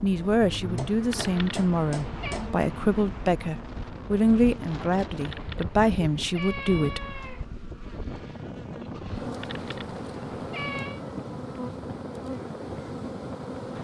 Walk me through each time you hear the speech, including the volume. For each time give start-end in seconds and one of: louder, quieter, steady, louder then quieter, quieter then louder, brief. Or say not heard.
0.0-7.1 steady.